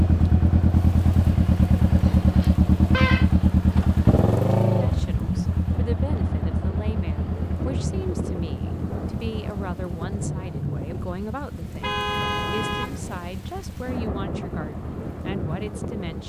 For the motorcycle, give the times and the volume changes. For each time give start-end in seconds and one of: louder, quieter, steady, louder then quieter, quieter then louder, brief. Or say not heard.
0.0-16.2 quieter.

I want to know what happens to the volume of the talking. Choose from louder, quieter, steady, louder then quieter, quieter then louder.
steady.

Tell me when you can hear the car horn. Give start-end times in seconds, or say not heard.
2.3-3.8, 11.6-13.0.